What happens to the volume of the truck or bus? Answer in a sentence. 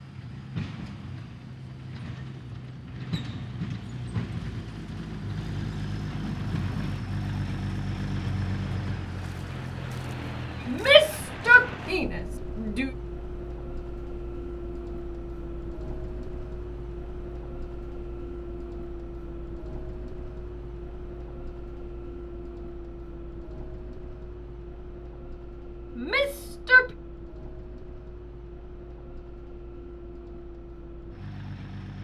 The volume of the truck or bus goes down.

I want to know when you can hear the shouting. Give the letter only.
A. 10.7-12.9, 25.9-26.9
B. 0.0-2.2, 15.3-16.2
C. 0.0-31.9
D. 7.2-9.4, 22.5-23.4
A.